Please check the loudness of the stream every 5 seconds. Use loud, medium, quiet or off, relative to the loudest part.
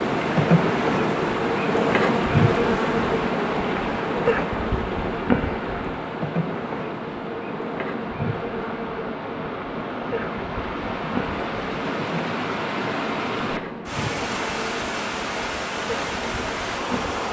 loud, medium, loud, loud.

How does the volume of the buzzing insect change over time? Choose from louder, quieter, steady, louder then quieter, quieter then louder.
quieter.